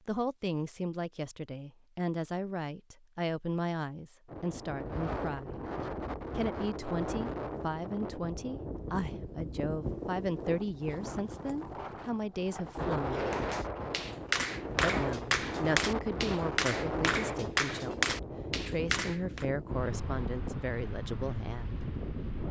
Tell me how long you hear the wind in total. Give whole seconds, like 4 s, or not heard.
18 s.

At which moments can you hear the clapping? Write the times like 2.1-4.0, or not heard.
13.3-19.4.